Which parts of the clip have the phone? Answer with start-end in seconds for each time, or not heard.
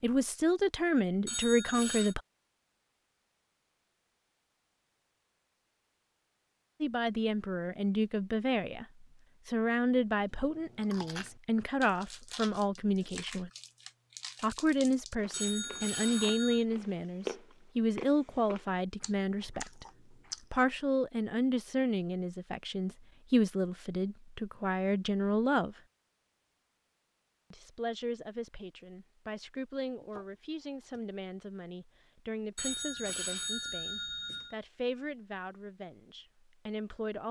1.2-2.1, 15.3-16.6, 32.5-34.5.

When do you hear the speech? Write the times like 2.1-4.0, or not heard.
0.0-2.2, 6.8-13.5, 14.4-19.9, 20.5-25.8, 27.5-37.2.